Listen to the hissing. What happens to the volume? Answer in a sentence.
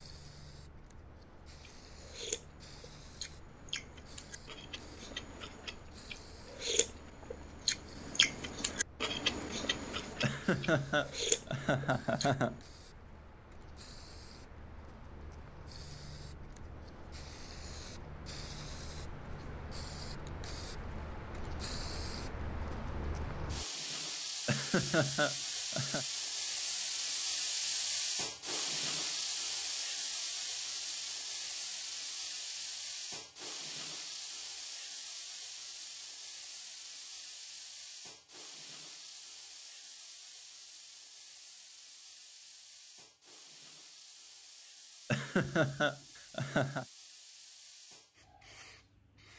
The loudness of the hissing goes up, then down.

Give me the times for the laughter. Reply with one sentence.
You can hear the laughter from 10.2 to 12.6 s, from 24.4 to 26.1 s and from 45.1 to 46.9 s.